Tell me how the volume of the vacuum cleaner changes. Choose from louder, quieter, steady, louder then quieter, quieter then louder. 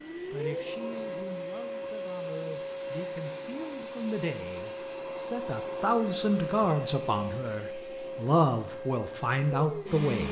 steady.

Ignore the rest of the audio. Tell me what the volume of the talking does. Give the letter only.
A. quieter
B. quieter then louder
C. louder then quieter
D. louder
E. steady
D.